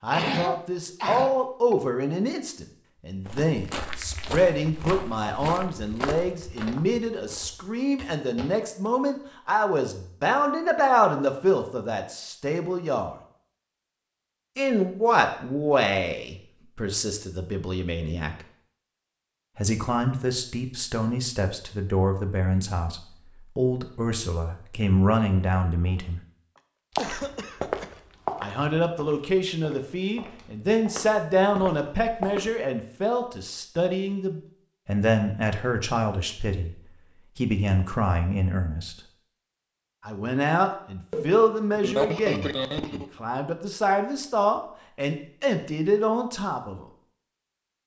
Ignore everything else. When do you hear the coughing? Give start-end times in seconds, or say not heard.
0.1-1.8, 26.6-28.0, 40.7-43.0.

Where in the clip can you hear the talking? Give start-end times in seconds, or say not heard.
0.0-13.2, 14.6-18.4, 19.6-26.2, 28.4-36.8, 37.4-39.0, 40.0-46.9.